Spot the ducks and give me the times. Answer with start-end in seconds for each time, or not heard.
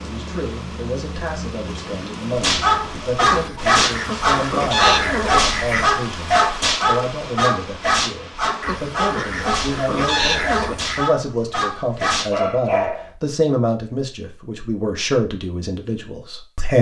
3.2-5.8, 8.6-11.1.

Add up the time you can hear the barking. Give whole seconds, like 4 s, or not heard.
11 s.